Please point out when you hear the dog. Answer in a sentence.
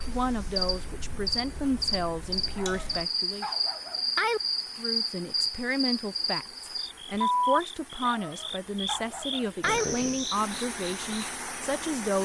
You can hear the dog from 2.5 to 4.4 s and from 8.0 to 9.8 s.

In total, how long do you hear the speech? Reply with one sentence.
You can hear the speech for 11 seconds altogether.